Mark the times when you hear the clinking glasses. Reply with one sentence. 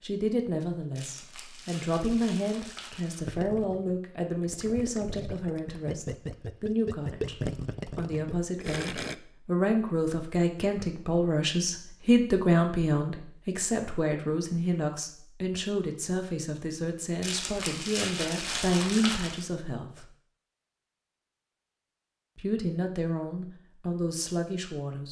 The clinking glasses can't be heard in this clip.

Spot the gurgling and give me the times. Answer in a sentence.
The gurgling can be heard from 3.2 to 9.2 s.